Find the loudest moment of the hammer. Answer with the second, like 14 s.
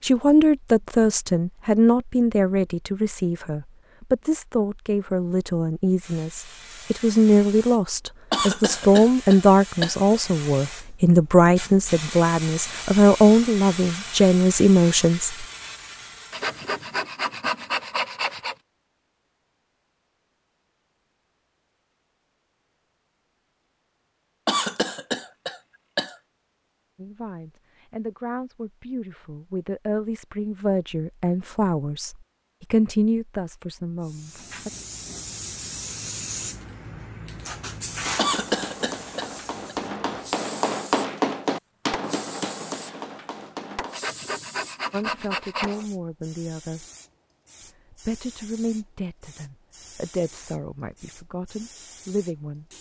41 s.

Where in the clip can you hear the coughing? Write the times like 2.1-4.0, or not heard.
8.3-10.0, 24.4-26.1, 38.1-39.8.